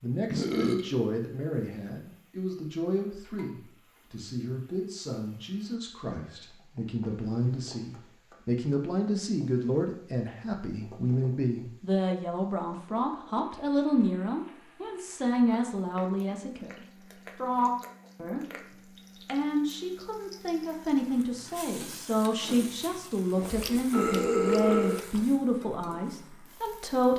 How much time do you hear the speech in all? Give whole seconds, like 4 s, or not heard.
26 s.